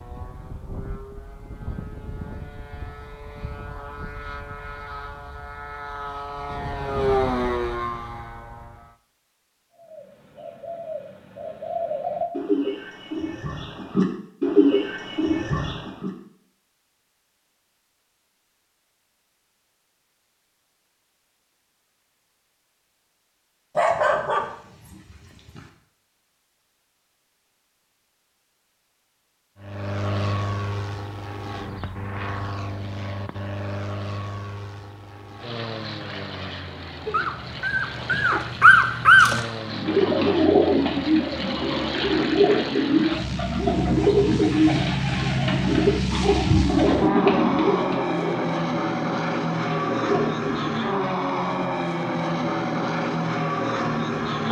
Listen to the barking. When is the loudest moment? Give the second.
39 s.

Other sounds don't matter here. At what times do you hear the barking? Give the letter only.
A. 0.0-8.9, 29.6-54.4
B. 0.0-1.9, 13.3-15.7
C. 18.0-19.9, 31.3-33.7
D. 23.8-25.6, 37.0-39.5
D.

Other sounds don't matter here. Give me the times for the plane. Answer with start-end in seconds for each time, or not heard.
0.0-8.9, 29.6-54.4.